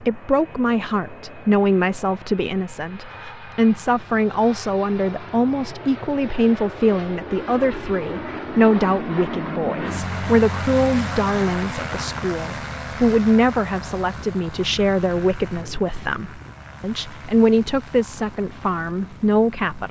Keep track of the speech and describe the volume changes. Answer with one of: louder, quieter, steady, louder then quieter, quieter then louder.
steady.